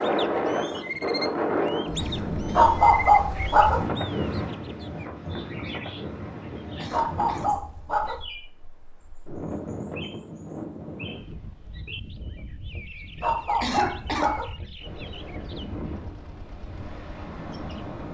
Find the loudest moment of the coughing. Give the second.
14 s.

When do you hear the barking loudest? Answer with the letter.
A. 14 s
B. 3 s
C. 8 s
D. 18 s
B.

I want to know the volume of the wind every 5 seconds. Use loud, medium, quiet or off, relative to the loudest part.
loud, medium, quiet, medium.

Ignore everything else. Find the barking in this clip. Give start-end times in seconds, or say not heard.
2.5-3.9, 6.9-8.2, 13.2-14.6.